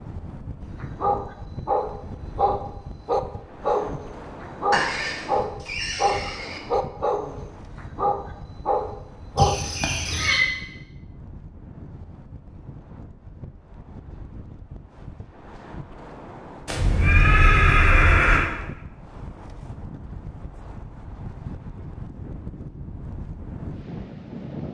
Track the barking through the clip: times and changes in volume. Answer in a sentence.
The barking can be heard from 0.7 to 9.6 s, at a steady volume.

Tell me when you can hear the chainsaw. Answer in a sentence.
The chainsaw can't be heard in this clip.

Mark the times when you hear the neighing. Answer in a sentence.
The neighing can be heard from 4.7 to 6.6 s, from 9.3 to 10.4 s and from 16.6 to 18.5 s.